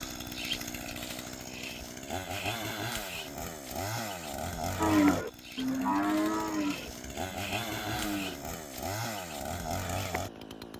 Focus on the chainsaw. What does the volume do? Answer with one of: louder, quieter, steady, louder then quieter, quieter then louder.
steady.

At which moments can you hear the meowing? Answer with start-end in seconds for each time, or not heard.
not heard.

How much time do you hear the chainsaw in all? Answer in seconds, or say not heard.
11 s.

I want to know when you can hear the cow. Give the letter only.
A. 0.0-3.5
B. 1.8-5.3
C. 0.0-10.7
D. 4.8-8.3
D.